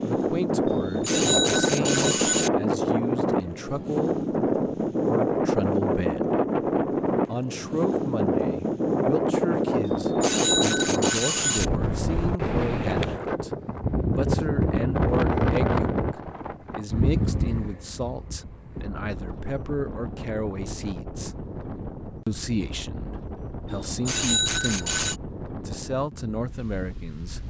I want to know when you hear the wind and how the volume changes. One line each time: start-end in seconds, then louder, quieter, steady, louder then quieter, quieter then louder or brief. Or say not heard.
0.0-27.4 quieter.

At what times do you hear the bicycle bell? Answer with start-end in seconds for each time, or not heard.
0.7-2.5, 9.8-11.7, 23.7-25.2.